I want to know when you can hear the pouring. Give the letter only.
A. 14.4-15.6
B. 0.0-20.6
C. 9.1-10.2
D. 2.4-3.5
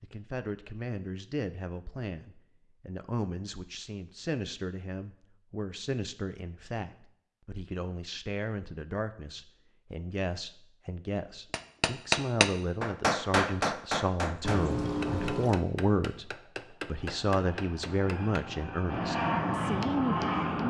A.